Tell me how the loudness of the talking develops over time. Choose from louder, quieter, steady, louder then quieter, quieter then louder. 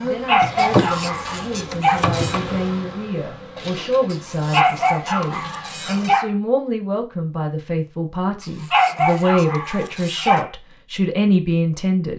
louder.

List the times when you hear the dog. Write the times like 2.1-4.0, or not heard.
0.2-2.0, 4.5-6.3, 8.7-10.5.